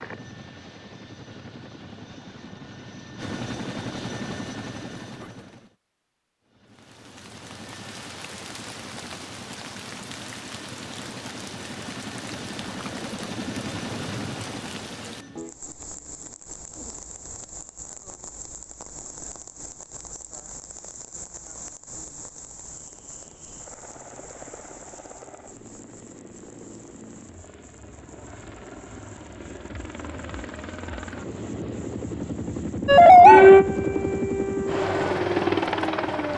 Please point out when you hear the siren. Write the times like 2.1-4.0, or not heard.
32.9-36.3.